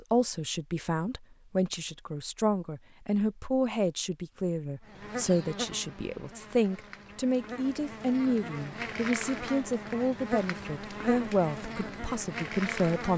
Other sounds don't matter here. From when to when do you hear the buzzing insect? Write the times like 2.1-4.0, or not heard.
4.8-13.1.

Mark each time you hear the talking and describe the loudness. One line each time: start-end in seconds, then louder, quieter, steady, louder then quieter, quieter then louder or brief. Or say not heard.
0.0-13.1 steady.